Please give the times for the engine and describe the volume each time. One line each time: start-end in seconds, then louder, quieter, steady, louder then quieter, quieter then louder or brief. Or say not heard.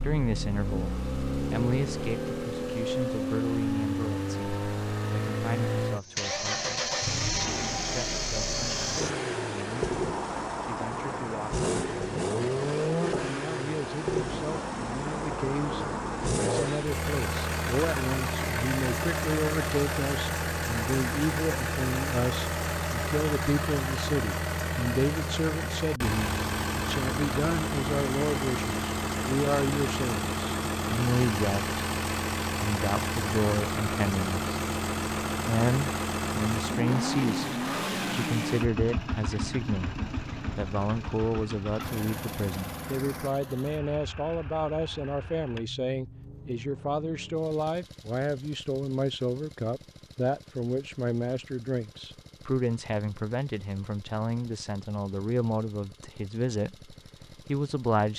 0.0-58.1 quieter.